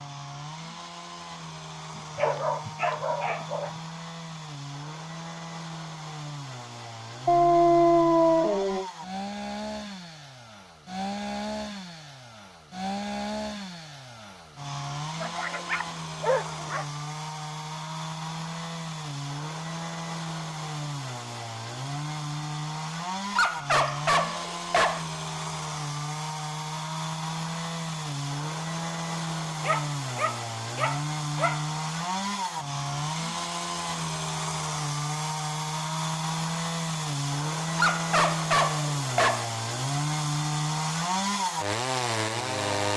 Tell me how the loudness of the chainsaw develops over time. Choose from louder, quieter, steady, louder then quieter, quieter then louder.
louder.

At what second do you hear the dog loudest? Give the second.
8 s.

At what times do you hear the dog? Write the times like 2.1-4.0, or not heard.
1.9-3.8, 7.2-8.8, 15.2-16.9, 23.4-25.1, 29.6-31.6, 37.8-39.5.